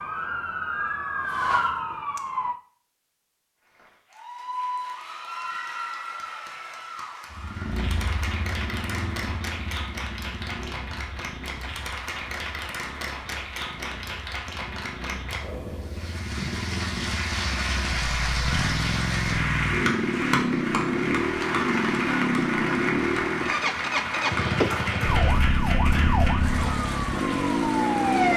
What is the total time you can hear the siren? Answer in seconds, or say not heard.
6 s.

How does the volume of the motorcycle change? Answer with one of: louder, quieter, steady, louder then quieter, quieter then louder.
quieter then louder.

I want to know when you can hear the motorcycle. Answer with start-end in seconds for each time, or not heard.
7.3-28.3.